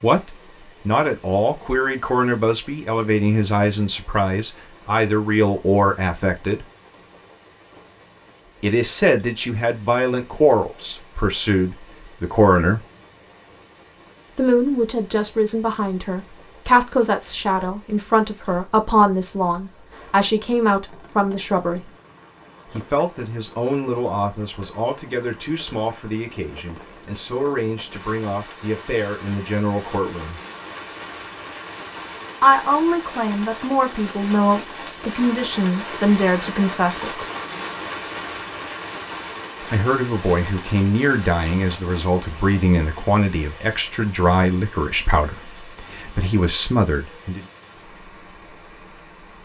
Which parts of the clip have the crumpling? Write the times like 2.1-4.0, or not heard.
36.7-37.9.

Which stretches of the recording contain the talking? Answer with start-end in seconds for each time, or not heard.
0.0-6.7, 8.6-12.8, 14.3-21.9, 22.7-30.4, 32.4-37.2, 39.6-47.5.